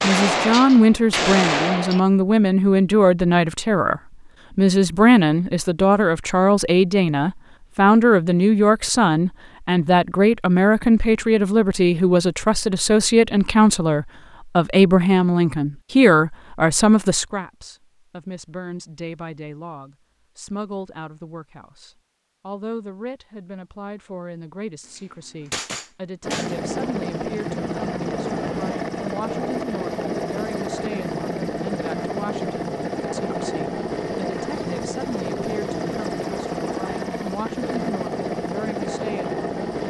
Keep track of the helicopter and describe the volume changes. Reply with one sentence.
The loudness of the helicopter stays about the same.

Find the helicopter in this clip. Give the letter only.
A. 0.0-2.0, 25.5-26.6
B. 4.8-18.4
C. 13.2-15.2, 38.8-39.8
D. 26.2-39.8
D.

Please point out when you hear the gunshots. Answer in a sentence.
The gunshots can be heard from 0.0 to 2.0 s and from 25.5 to 26.6 s.